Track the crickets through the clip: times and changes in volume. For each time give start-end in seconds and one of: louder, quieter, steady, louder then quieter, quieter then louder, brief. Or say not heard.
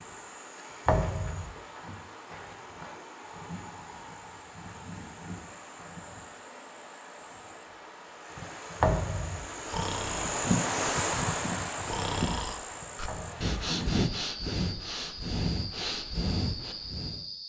0.0-17.4 louder then quieter.